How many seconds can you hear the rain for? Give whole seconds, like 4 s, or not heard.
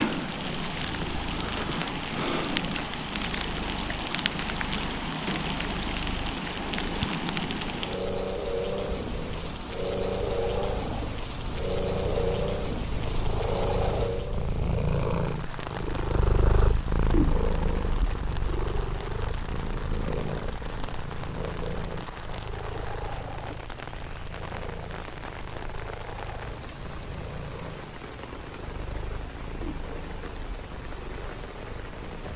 32 s.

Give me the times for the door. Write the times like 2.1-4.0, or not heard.
not heard.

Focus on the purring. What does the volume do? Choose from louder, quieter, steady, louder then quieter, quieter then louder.
louder then quieter.